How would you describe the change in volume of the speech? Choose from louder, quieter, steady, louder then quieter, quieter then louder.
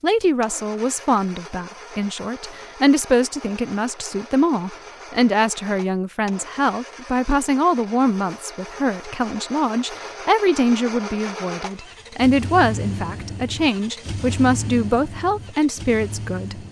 steady.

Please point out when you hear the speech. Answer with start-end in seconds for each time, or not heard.
0.0-16.6.